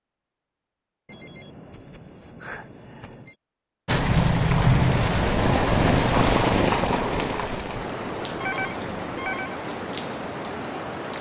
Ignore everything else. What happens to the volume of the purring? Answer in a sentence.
The loudness of the purring goes down.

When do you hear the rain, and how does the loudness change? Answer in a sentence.
You can hear the rain from 3.9 to 11.1 s, getting quieter.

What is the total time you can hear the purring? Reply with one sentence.
The purring can be heard for 4 seconds in total.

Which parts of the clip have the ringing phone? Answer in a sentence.
The ringing phone can be heard from 1.1 to 3.4 s and from 8.4 to 9.6 s.